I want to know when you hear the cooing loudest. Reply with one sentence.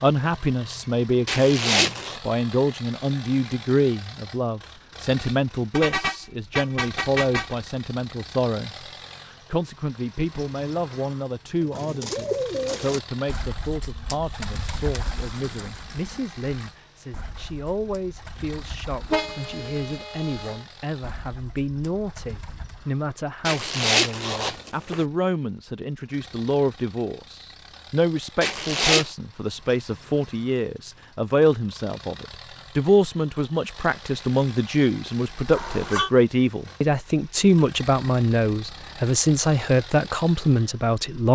The volume of the cooing peaks at 12 seconds.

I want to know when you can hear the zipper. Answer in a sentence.
You can hear the zipper from 1.2 to 2.2 s, from 23.4 to 25.1 s and from 28.4 to 29.1 s.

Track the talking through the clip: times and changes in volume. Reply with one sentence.
You can hear the talking from 0.0 to 41.3 s, getting quieter then louder.